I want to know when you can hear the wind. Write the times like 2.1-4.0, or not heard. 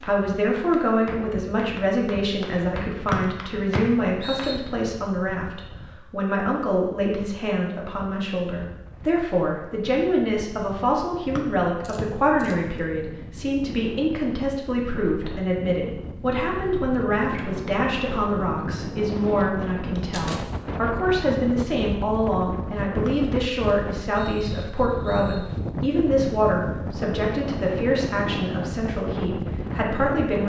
0.0-30.4.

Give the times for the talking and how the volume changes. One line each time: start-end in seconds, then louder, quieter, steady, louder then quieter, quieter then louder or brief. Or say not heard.
0.1-30.4 steady.